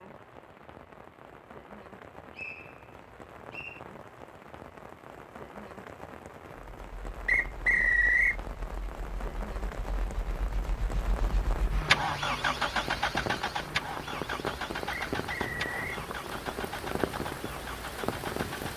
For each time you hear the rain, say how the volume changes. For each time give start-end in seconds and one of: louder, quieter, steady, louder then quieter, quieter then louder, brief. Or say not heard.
0.0-18.7 louder.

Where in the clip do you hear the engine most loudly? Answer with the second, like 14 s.
12 s.